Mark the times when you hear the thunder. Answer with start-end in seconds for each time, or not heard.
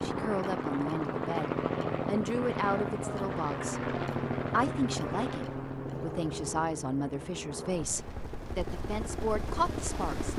not heard.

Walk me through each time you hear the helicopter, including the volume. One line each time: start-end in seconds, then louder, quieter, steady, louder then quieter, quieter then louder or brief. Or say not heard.
0.0-10.3 quieter.